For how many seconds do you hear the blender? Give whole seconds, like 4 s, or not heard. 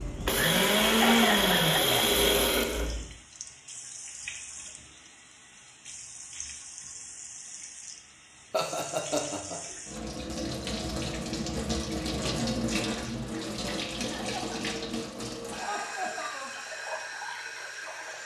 3 s.